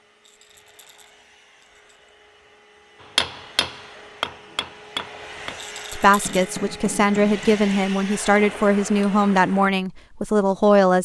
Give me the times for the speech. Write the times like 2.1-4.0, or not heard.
5.9-11.0.